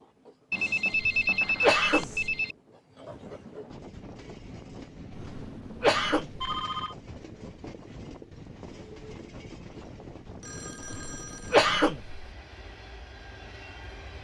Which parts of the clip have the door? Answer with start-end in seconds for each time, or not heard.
not heard.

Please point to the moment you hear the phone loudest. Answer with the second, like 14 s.
1 s.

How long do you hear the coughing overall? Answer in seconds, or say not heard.
4 s.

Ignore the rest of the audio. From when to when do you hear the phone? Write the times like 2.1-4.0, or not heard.
0.5-2.5, 5.0-7.0, 10.4-11.7.